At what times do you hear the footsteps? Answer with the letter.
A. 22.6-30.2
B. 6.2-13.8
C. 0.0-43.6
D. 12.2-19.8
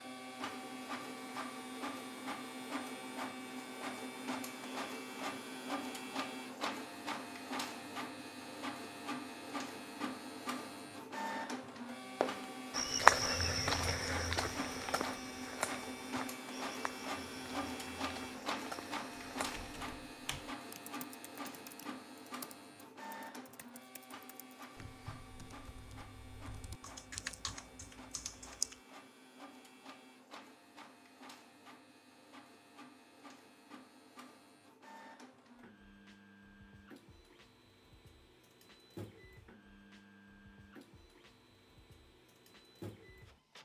D.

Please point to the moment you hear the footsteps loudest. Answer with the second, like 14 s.
13 s.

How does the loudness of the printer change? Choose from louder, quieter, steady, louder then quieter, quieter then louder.
quieter.